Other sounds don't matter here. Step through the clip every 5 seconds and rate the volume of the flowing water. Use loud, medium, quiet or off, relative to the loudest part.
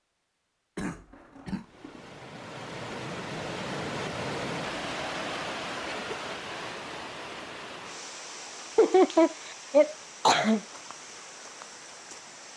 loud, loud, medium.